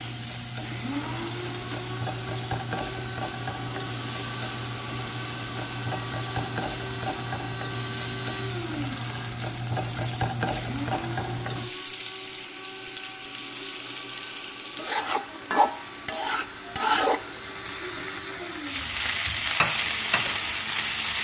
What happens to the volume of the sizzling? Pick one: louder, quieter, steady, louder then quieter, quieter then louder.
louder.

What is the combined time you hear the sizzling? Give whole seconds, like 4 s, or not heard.
21 s.